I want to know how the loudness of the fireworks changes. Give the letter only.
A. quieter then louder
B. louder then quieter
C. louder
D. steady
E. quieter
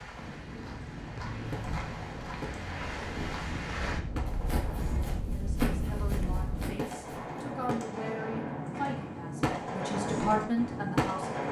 C.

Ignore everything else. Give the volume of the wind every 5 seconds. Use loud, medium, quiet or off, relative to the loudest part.
loud, loud, off.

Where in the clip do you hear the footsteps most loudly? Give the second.
6 s.